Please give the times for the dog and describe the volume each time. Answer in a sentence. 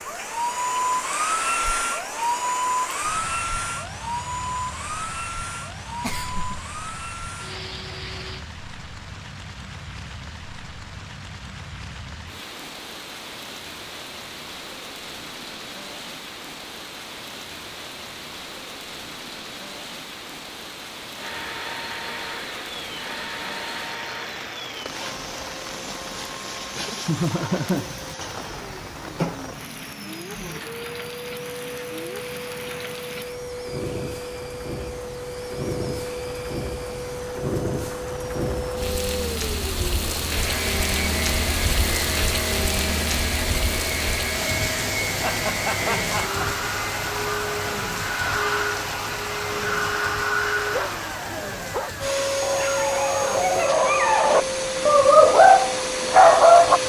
You can hear the dog from 50.7 to 56.8 s, getting louder.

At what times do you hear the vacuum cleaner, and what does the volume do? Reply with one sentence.
You can hear the vacuum cleaner from 0.0 to 8.4 s, getting quieter; and from 21.1 to 56.8 s, getting louder.